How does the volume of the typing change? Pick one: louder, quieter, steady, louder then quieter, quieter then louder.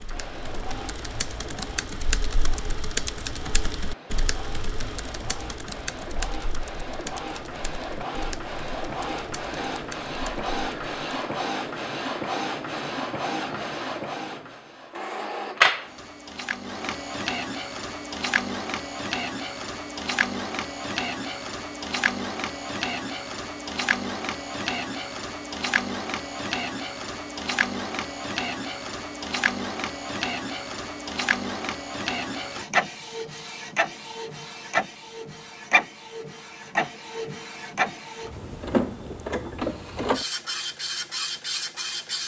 quieter.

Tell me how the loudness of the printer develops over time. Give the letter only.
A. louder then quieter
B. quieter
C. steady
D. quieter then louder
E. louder
E.